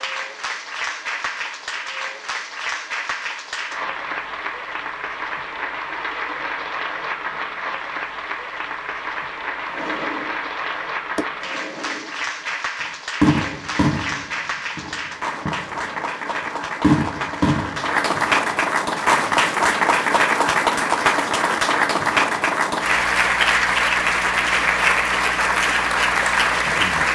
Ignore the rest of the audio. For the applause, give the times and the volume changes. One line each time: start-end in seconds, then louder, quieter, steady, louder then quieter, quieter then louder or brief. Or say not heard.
0.0-27.1 louder.